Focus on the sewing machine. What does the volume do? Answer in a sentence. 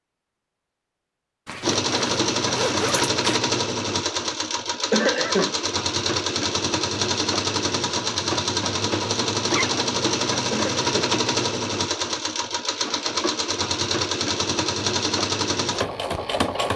The loudness of the sewing machine stays about the same.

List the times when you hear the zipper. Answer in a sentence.
You can hear the zipper from 1.4 to 3.2 s and from 9.4 to 9.8 s.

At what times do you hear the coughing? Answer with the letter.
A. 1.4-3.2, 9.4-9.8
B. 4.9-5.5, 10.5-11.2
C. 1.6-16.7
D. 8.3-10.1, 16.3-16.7
B.